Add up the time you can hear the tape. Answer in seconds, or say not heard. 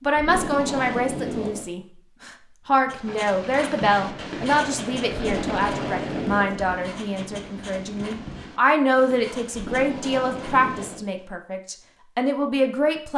5 s.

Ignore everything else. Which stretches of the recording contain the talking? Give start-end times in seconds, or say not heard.
0.0-13.1.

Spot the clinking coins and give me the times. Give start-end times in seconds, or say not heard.
not heard.